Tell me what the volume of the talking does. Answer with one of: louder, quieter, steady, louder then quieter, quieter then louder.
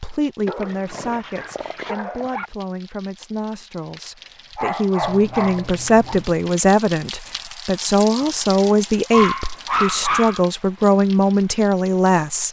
louder.